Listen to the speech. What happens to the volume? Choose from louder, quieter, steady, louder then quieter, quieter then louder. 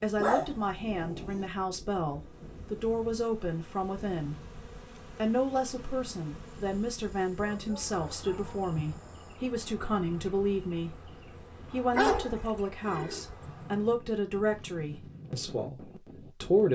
steady.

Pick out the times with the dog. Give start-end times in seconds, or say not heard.
0.1-1.5, 6.5-9.4, 11.9-13.2.